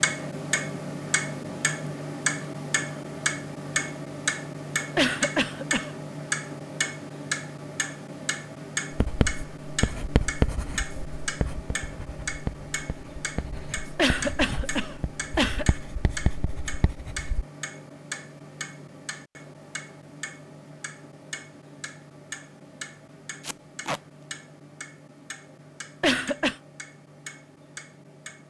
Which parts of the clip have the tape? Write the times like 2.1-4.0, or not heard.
23.4-24.0.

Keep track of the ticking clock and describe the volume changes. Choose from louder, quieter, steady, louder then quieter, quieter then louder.
quieter.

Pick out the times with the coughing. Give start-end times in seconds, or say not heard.
5.0-5.9, 13.9-15.7, 26.0-26.6.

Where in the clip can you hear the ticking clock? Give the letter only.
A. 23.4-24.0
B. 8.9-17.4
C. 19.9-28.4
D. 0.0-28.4
D.